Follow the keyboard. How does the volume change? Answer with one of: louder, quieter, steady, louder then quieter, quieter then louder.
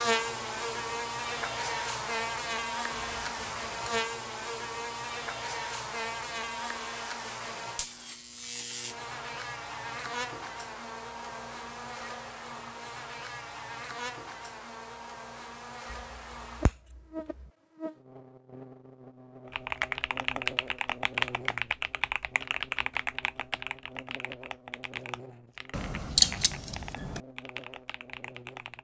quieter.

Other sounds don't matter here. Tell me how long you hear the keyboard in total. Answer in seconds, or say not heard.
9 s.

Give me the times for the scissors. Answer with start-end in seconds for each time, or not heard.
2.9-4.0, 15.9-17.4, 25.7-27.2.